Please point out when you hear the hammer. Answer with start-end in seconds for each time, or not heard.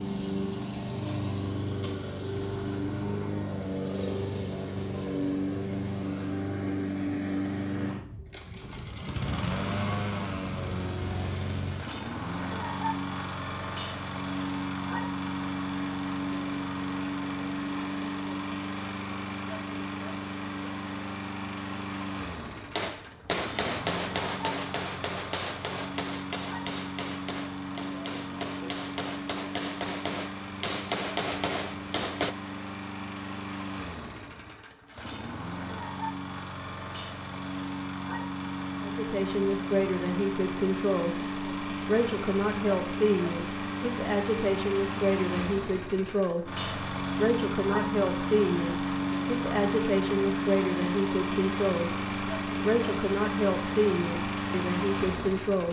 22.8-32.4.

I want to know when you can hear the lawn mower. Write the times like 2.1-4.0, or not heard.
0.0-55.6.